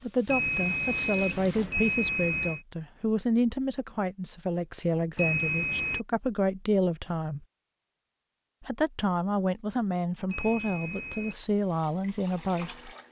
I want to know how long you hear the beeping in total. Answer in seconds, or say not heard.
4 s.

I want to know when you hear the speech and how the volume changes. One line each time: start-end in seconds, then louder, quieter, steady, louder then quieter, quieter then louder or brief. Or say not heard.
0.0-7.5 steady
8.6-12.9 steady.